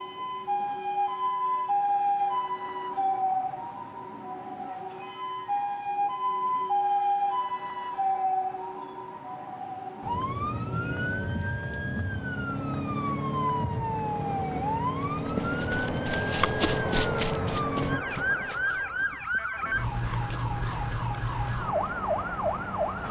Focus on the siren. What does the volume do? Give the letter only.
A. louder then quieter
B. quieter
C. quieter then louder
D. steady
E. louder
D.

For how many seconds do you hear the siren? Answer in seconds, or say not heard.
23 s.